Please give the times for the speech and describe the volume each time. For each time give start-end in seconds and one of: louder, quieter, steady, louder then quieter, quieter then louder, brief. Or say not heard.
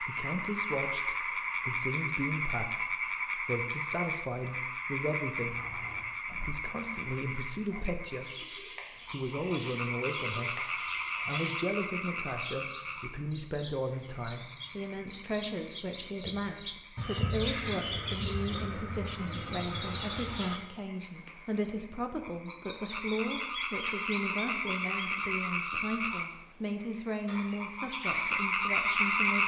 0.0-29.4 steady.